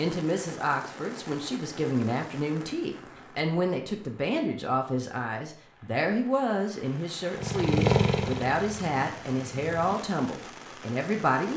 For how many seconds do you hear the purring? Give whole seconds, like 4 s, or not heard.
3 s.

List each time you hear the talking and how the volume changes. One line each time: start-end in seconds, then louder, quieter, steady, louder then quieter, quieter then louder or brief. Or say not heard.
0.0-11.5 steady.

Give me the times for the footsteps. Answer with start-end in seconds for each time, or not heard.
not heard.